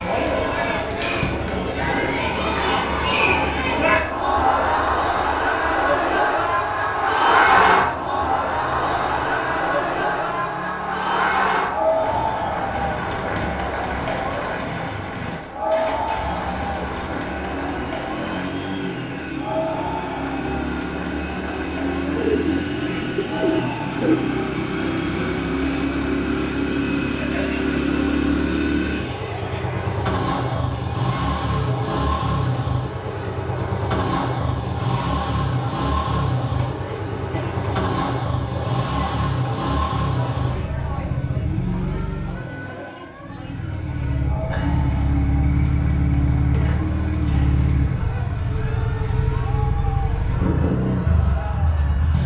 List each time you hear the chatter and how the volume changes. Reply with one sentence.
The chatter can be heard from 0.0 to 52.2 s, getting quieter.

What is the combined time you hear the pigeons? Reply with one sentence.
You can hear the pigeons for 2 seconds altogether.